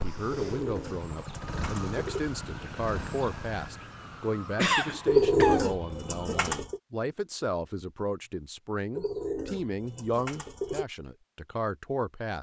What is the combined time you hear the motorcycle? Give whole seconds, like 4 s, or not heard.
4 s.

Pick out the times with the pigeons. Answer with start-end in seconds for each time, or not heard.
0.3-2.2, 5.0-6.8, 8.9-10.8.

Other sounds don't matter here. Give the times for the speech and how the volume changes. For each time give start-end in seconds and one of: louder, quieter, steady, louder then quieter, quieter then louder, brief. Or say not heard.
0.0-12.3 steady.